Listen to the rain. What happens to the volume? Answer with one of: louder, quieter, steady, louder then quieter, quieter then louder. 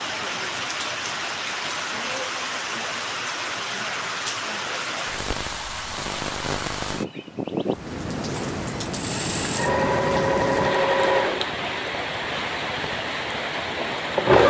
steady.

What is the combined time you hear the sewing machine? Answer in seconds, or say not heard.
6 s.